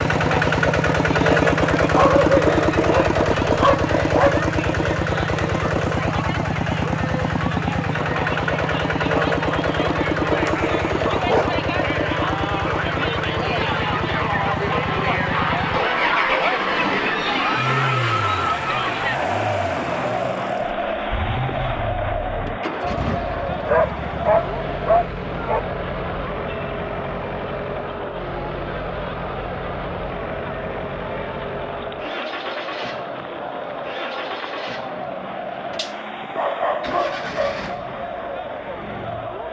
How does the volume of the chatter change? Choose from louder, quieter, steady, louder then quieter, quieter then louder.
louder then quieter.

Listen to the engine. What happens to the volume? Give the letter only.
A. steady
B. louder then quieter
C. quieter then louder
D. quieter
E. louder
D.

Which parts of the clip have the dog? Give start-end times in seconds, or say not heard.
1.9-4.5, 10.4-11.7, 23.6-25.6, 35.8-37.7.